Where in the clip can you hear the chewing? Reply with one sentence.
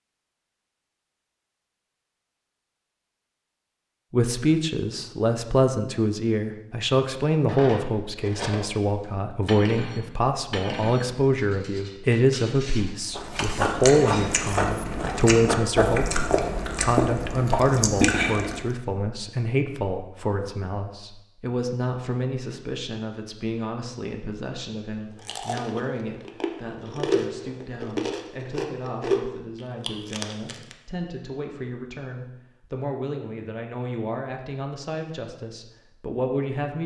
You can hear the chewing from 13.1 to 18.7 s and from 25.2 to 30.8 s.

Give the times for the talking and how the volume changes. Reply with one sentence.
You can hear the talking from 4.1 to 36.8 s, getting quieter.